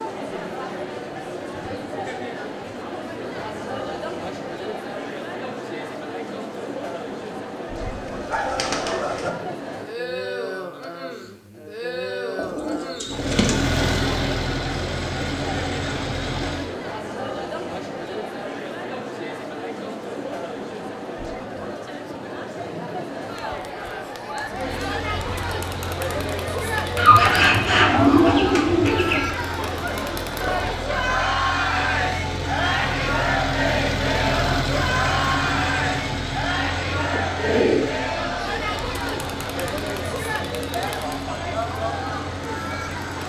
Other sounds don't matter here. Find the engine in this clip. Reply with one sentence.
You can hear the engine from 13.1 to 16.8 s and from 24.4 to 43.2 s.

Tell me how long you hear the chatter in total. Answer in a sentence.
You can hear the chatter for 43 seconds altogether.